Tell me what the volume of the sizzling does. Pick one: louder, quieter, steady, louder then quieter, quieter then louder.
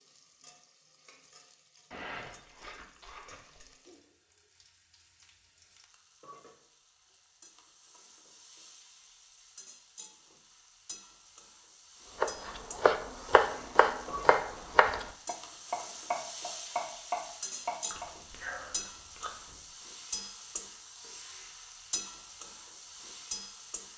louder.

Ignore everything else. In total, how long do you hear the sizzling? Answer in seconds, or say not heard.
24 s.